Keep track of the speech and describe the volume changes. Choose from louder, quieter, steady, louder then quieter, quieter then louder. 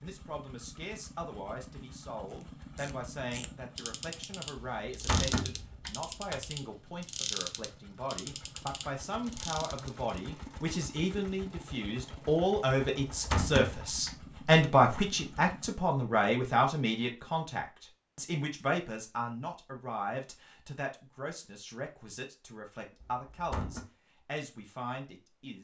louder then quieter.